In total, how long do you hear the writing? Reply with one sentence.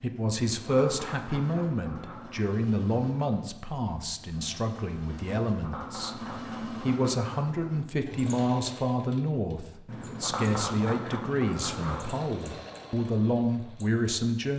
The writing can be heard for 7 seconds in total.